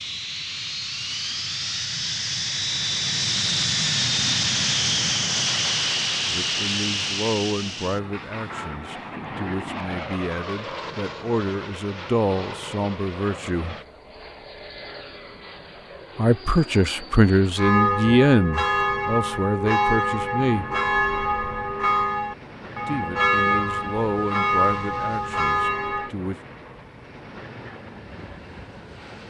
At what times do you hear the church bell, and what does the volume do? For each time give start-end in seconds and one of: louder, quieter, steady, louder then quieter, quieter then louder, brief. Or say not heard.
17.6-26.1 steady.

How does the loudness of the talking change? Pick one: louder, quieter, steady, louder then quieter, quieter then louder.
louder then quieter.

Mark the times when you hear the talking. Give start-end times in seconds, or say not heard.
6.2-13.8, 16.1-20.6, 22.9-26.4.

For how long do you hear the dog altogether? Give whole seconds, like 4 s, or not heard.
not heard.